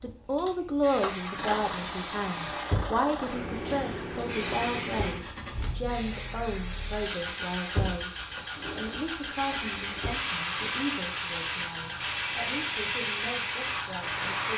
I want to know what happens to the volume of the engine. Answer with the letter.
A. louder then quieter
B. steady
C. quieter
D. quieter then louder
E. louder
B.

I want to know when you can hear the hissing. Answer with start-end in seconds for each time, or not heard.
0.0-14.5.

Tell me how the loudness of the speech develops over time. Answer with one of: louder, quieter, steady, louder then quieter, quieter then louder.
quieter.